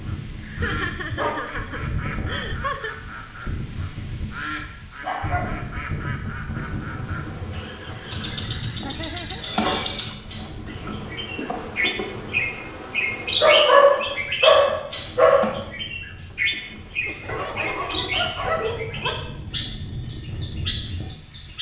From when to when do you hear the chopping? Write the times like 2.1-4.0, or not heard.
not heard.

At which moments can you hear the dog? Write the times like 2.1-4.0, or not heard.
0.3-2.5, 5.0-5.5, 9.4-10.9, 13.4-15.6, 17.2-19.1.